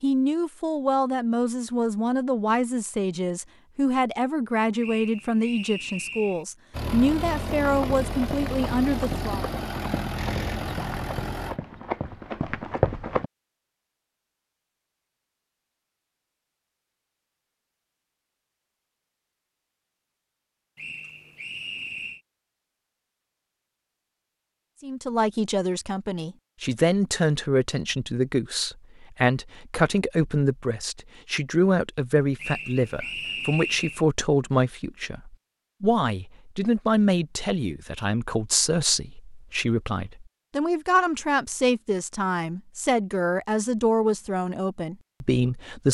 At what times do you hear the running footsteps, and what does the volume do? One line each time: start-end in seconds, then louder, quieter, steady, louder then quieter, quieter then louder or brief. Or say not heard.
7.6-13.2 louder.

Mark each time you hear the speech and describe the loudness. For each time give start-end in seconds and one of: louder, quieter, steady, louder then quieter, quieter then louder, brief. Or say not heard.
0.0-9.4 steady
24.8-45.8 steady.